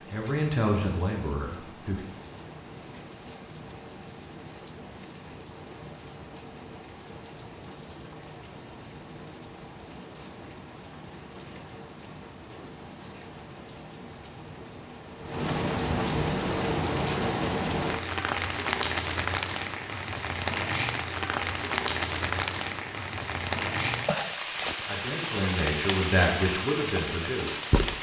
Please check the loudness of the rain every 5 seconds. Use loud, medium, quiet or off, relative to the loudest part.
quiet, quiet, quiet, loud, loud, loud.